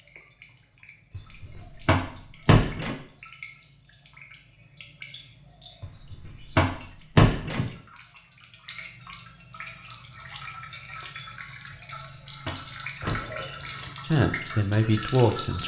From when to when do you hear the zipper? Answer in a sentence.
You can hear the zipper from 13.0 to 13.9 s.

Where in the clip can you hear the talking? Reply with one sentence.
You can hear the talking from 14.0 to 15.6 s.